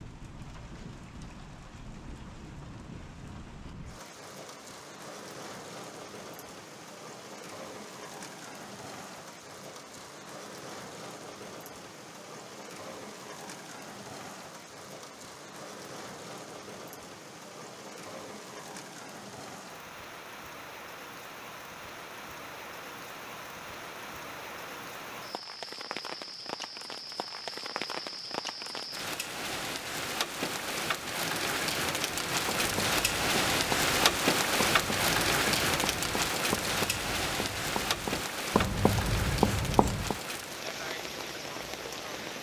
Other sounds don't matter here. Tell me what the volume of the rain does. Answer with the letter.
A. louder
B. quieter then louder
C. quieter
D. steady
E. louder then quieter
A.